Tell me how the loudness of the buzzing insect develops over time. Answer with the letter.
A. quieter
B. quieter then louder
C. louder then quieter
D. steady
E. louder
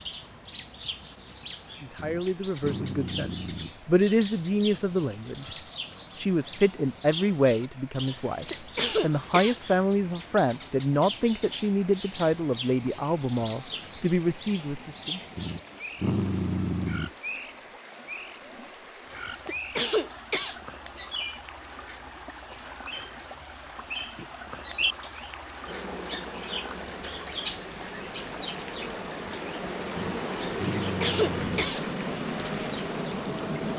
E.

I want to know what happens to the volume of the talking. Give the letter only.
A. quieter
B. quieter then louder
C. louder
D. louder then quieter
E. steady
E.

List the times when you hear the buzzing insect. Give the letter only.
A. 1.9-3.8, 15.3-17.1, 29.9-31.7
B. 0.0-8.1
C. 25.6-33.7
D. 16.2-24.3
C.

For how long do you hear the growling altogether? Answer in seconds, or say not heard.
5 s.